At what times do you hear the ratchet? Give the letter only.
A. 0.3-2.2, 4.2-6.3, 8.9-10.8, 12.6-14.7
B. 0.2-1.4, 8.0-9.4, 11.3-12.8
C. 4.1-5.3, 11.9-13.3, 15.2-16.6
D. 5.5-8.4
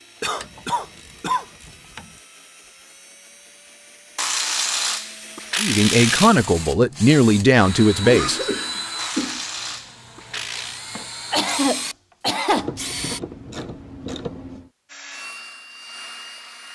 A.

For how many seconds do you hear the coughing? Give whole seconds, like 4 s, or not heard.
4 s.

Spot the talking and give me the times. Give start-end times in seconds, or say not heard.
5.5-8.4.